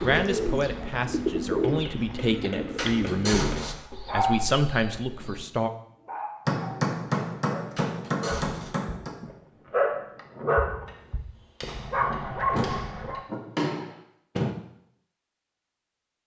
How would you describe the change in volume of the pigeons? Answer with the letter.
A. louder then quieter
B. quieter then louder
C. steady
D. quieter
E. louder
D.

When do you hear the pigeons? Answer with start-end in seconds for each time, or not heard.
0.0-5.5.